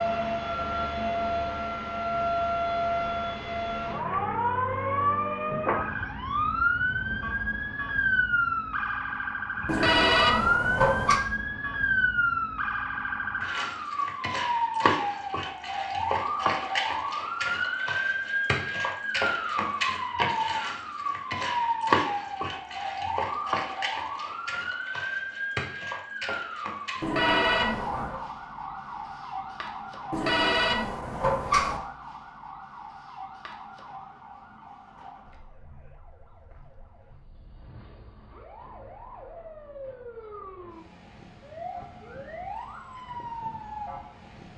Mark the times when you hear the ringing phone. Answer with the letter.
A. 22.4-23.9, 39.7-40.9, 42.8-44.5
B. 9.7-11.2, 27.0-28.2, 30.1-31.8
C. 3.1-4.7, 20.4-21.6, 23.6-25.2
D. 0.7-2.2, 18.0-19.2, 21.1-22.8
B.